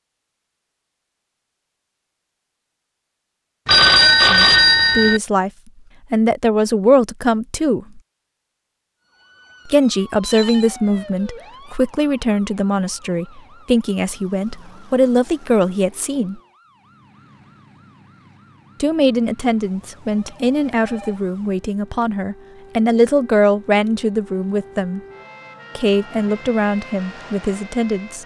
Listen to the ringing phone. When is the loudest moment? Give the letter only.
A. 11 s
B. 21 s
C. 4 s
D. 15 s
C.